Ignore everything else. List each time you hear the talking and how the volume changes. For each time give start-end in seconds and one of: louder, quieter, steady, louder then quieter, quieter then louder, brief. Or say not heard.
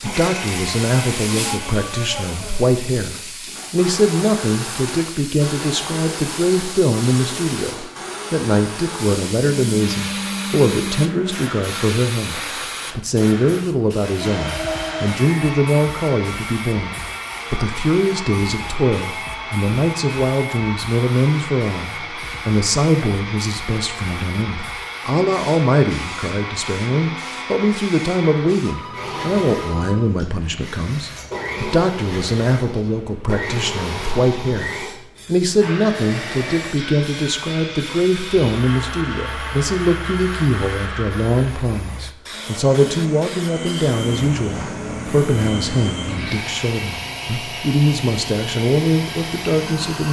0.0-50.0 steady.